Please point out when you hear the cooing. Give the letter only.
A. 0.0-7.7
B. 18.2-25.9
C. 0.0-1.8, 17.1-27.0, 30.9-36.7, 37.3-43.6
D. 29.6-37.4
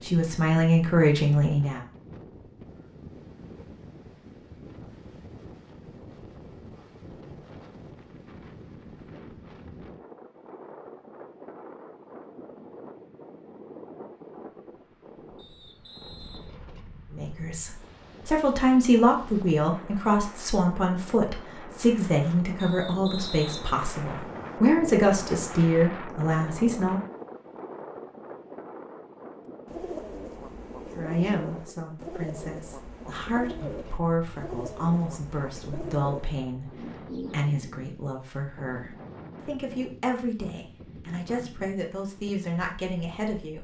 D.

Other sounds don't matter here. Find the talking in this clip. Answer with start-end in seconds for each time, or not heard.
0.0-1.8, 17.1-27.0, 30.9-36.7, 37.3-43.6.